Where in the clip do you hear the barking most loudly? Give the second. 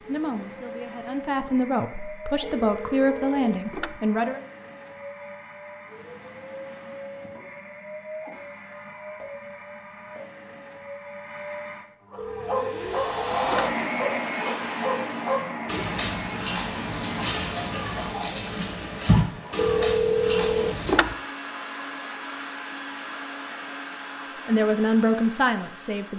19 s.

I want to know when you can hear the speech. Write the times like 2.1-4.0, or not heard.
0.1-4.4, 24.4-26.1.